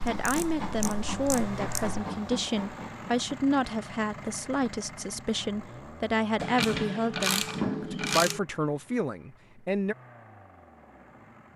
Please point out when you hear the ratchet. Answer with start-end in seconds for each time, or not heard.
0.1-2.0, 6.3-8.4.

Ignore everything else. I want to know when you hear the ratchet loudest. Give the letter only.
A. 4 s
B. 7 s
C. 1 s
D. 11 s
B.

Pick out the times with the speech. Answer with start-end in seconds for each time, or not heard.
0.1-9.9.